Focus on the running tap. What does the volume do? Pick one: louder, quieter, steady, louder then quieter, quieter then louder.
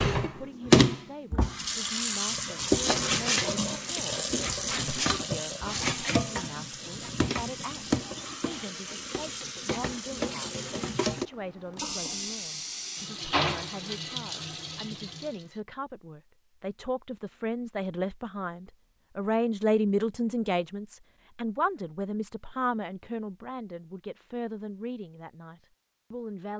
quieter.